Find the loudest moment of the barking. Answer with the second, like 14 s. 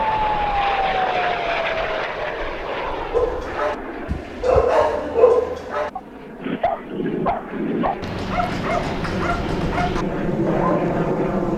5 s.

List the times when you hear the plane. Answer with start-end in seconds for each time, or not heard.
0.0-11.5.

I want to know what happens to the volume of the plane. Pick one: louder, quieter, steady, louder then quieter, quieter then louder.
quieter then louder.